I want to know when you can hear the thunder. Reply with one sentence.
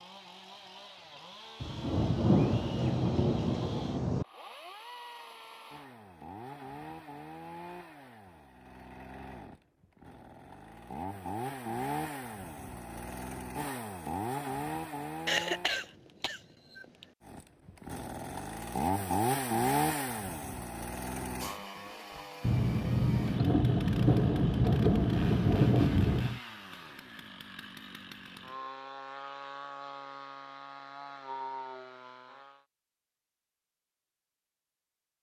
You can hear the thunder from 1.6 to 4.2 s and from 22.4 to 26.4 s.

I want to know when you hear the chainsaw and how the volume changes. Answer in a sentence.
You can hear the chainsaw from 0.0 to 15.8 s, getting louder; and from 17.2 to 32.6 s, getting quieter.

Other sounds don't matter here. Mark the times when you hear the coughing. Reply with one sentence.
The coughing can be heard from 15.2 to 17.1 s.